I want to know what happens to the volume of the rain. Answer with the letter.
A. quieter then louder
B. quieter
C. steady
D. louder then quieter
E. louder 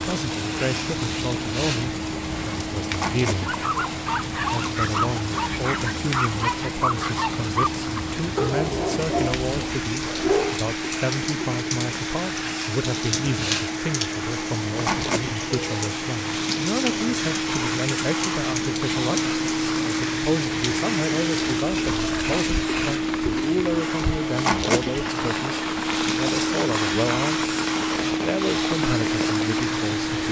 C.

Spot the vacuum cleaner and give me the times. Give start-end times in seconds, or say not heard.
0.0-30.2.